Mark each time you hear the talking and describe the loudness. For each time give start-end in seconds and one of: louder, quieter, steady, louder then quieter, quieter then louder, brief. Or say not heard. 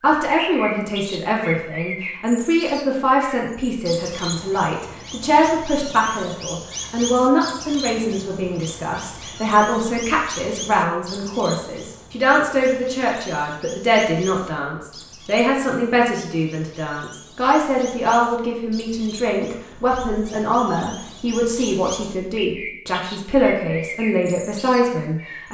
0.0-25.4 steady.